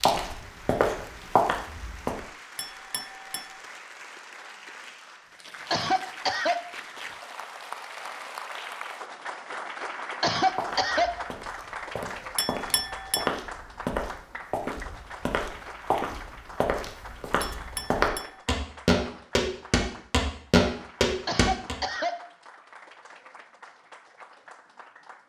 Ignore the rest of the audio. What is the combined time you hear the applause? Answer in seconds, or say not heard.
25 s.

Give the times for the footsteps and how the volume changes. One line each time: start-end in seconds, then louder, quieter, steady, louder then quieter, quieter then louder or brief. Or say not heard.
0.0-2.2 brief
10.6-21.8 louder.